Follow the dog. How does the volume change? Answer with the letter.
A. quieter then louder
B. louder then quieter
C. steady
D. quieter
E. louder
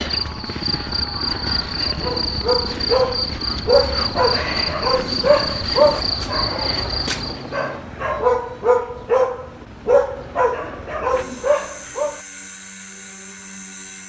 A.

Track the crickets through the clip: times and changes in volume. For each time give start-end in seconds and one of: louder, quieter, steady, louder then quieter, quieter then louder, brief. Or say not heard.
0.0-7.7 steady.